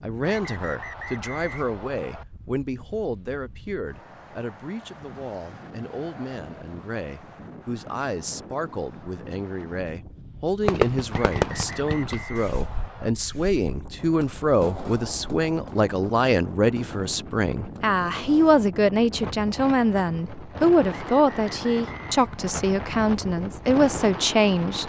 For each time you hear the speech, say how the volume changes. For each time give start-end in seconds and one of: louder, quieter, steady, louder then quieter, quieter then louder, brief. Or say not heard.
0.0-24.8 louder.